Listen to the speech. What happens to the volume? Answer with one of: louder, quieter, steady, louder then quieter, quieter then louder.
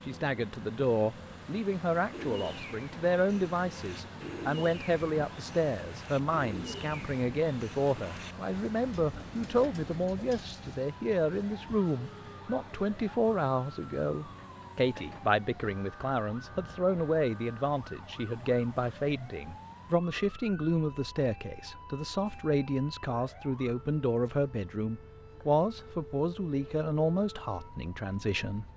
steady.